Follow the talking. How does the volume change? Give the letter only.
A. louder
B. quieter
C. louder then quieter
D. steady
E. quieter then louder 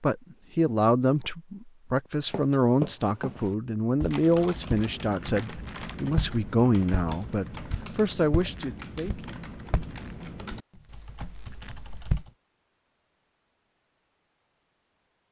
D.